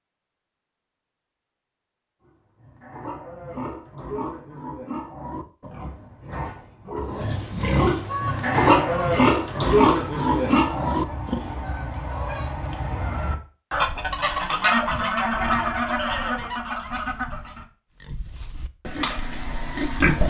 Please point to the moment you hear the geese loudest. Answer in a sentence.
The loudest moment of the geese is at 15 seconds.